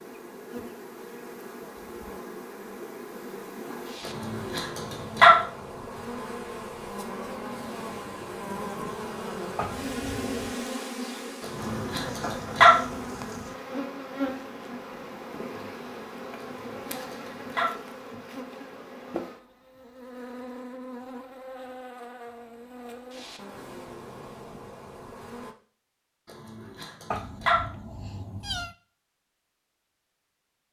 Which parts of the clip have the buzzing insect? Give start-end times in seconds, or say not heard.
0.0-25.6.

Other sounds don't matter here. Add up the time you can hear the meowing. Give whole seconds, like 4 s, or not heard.
3 s.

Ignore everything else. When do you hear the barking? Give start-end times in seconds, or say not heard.
4.0-5.4, 11.4-12.8, 16.4-17.8, 26.2-27.6.